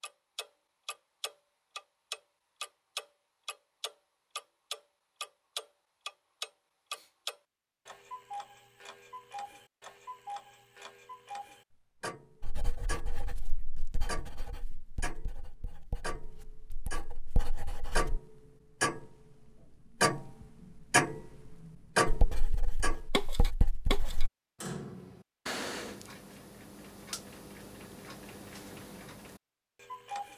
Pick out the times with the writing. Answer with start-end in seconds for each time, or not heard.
12.4-18.1, 22.1-24.3.